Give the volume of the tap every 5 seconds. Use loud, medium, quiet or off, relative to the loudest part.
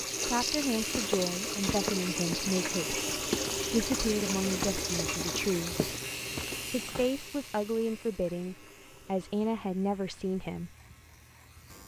loud, medium, off.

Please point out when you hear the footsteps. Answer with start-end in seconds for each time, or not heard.
0.9-7.1.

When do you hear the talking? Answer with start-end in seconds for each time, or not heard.
0.1-5.8, 6.7-10.8.